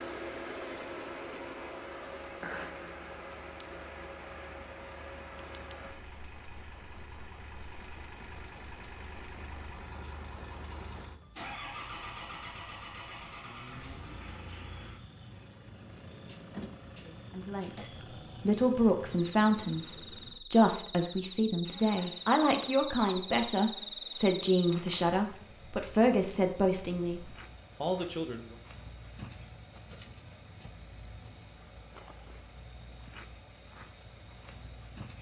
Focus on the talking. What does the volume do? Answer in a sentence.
The volume of the talking stays about the same.